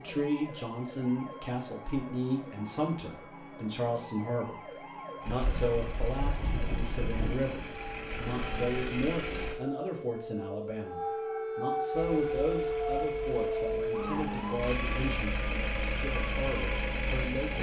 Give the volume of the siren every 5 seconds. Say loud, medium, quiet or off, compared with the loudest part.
quiet, medium, loud, medium.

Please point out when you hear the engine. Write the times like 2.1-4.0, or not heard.
5.2-9.6, 11.9-17.5.